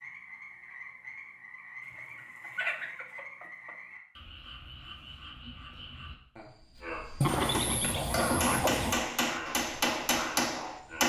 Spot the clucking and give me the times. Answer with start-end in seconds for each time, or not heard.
2.4-3.7, 7.2-9.0.